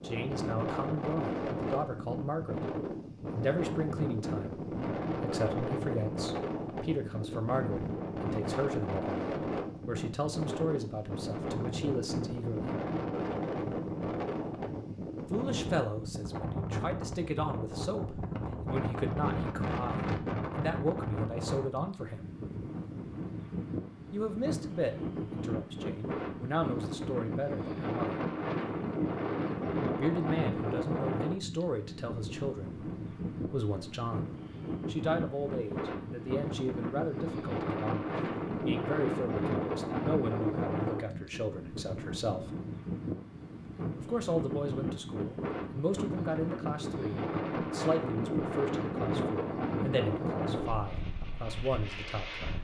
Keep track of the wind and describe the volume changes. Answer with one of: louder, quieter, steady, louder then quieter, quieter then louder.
steady.